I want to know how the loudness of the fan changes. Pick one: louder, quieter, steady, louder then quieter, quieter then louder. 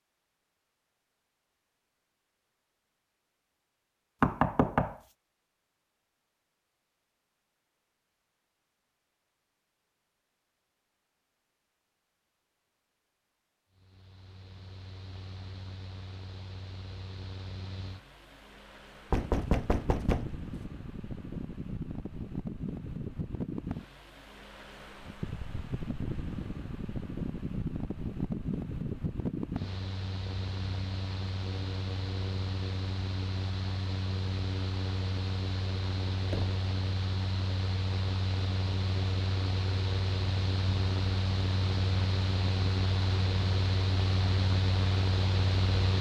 louder.